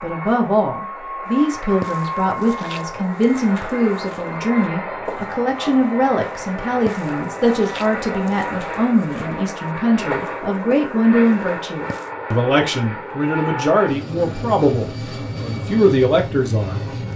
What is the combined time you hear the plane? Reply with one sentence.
You can hear the plane for 17 seconds altogether.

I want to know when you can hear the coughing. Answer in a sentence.
The coughing can't be heard in this clip.